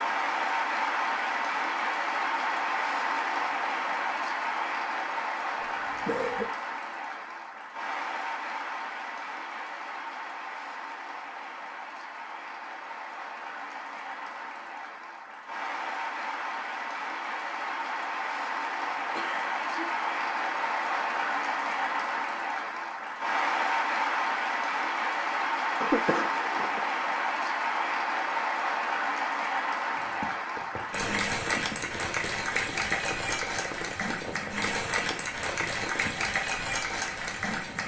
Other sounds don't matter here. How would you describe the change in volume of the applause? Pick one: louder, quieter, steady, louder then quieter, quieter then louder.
quieter then louder.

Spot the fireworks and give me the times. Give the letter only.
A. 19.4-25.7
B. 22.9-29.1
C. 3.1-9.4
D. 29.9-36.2
D.